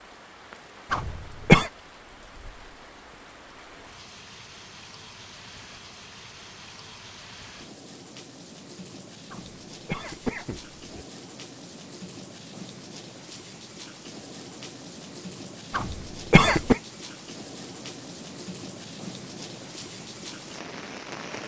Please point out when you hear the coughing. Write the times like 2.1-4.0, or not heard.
0.9-1.7, 9.3-11.1, 15.7-16.8.